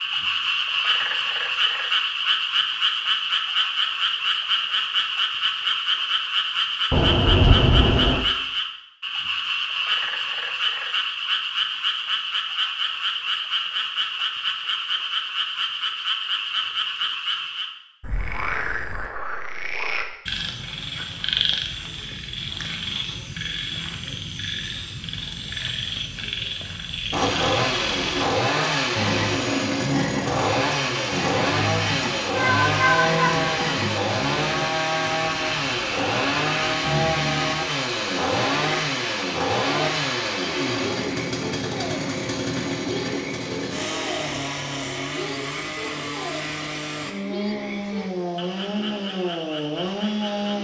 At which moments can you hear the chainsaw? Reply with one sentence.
You can hear the chainsaw from 27.1 to 50.5 s.